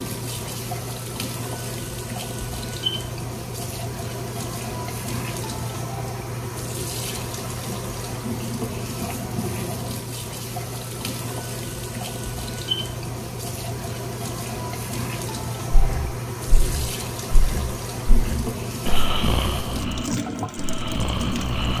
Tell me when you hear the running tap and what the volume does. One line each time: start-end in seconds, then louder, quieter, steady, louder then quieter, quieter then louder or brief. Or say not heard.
0.0-21.7 steady.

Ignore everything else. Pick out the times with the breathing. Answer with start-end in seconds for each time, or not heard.
15.8-21.7.